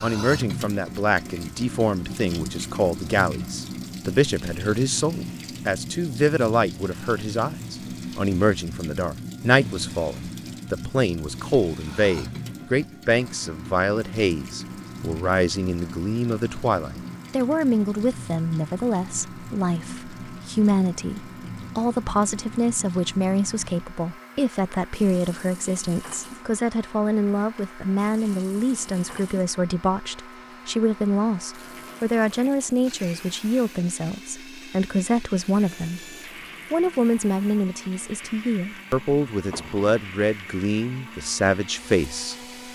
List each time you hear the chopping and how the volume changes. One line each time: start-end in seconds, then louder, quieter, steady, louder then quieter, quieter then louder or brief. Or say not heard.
not heard.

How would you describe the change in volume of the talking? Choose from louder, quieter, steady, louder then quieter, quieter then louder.
steady.